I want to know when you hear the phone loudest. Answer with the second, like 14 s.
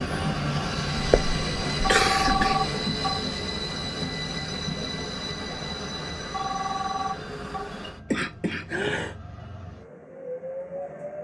2 s.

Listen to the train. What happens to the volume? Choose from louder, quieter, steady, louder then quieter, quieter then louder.
quieter.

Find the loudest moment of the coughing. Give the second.
2 s.